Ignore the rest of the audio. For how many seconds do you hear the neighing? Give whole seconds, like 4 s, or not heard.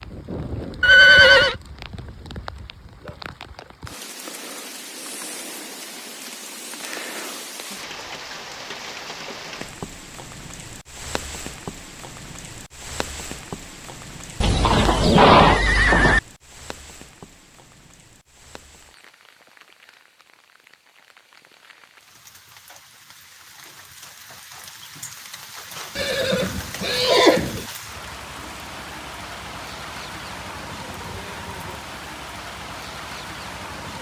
4 s.